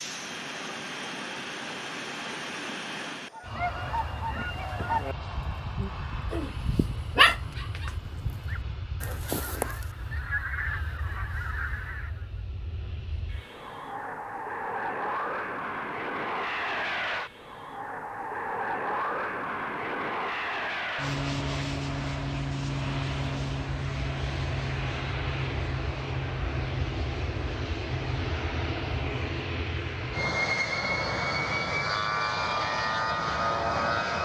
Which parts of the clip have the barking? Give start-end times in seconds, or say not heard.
6.3-8.0.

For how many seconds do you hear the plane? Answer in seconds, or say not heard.
34 s.